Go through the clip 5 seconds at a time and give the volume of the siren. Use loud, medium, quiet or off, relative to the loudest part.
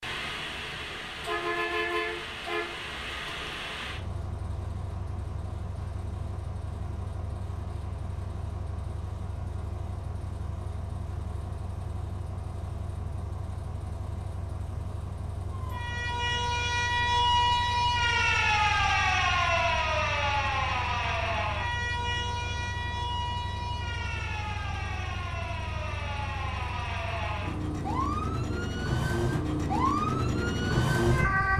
off, off, off, loud, medium, medium, loud.